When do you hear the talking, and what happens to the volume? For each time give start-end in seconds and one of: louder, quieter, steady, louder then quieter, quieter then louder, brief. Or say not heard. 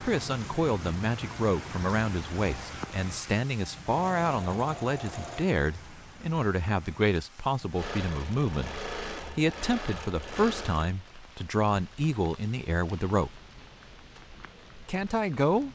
0.0-13.3 steady
14.8-15.7 brief.